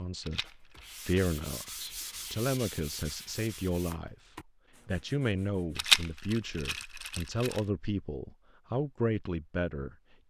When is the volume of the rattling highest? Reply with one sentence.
The volume of the rattling peaks at 6 seconds.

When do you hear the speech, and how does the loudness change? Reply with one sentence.
The speech can be heard from 0.0 to 9.9 s, at a steady volume.